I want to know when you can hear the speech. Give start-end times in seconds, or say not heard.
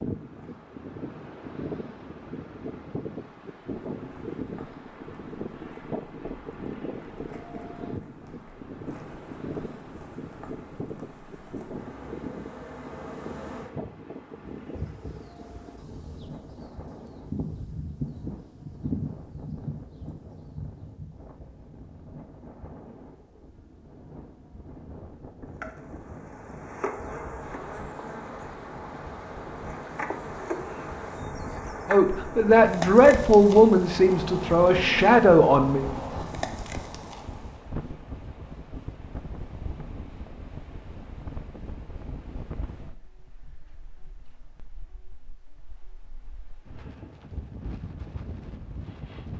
31.9-35.9.